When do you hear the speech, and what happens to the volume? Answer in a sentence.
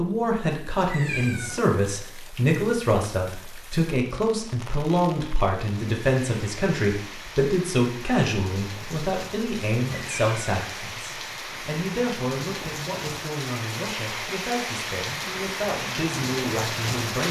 The speech can be heard from 0.0 to 17.2 s, getting quieter.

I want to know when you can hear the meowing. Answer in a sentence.
You can hear the meowing from 0.8 to 1.6 s and from 9.8 to 10.4 s.